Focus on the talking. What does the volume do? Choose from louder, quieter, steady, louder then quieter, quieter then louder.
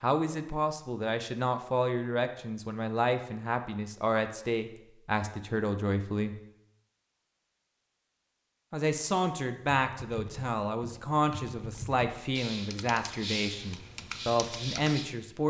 steady.